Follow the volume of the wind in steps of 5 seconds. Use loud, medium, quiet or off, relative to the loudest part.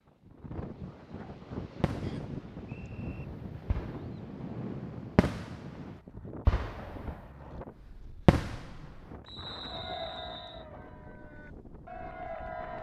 loud, medium, medium.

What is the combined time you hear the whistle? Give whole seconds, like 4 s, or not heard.
3 s.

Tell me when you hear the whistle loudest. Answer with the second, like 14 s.
10 s.